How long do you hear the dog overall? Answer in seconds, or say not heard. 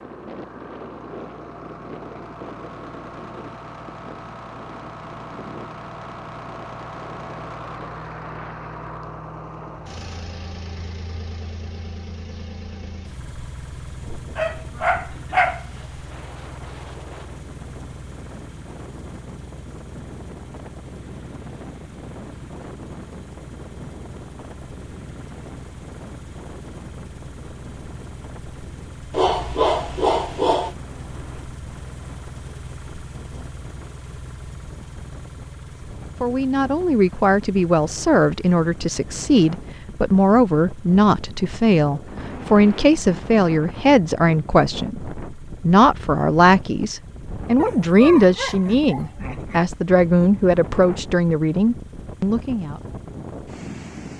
5 s.